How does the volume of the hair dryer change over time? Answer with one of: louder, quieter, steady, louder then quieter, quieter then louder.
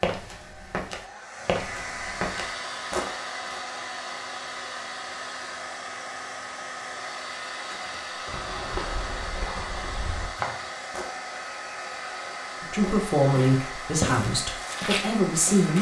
steady.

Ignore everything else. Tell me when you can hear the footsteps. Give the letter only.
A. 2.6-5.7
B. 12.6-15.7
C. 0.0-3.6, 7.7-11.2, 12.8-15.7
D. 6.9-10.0
C.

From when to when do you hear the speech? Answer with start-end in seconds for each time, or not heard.
12.6-15.7.